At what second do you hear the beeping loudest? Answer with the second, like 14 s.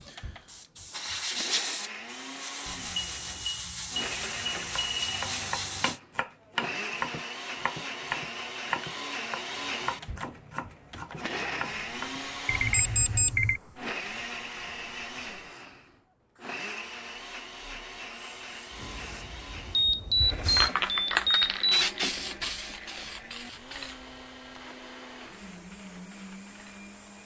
13 s.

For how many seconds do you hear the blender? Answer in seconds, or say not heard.
27 s.